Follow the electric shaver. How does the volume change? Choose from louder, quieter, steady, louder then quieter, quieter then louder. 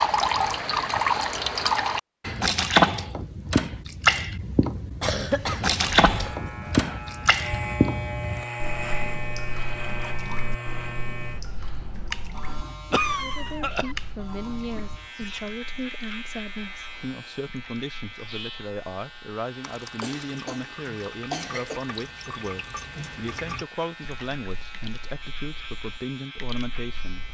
quieter.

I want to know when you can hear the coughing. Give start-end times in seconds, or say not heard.
5.0-6.7, 12.9-13.9, 20.0-20.7, 21.3-21.8.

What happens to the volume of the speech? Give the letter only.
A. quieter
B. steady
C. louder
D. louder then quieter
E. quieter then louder
B.